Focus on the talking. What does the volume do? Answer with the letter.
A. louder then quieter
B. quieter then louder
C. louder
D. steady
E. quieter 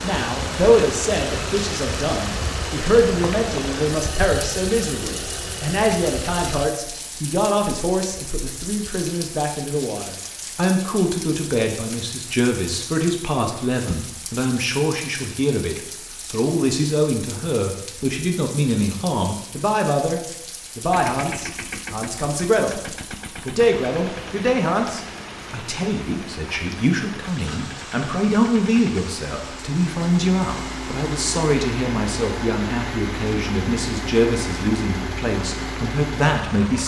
D.